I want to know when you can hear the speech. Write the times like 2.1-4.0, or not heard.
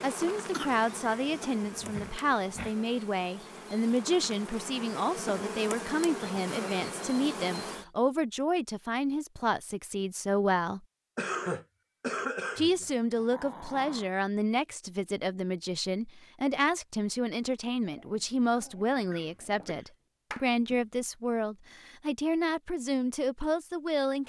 0.0-10.8, 12.6-24.2.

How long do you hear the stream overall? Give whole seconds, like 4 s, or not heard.
not heard.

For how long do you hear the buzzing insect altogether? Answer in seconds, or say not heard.
8 s.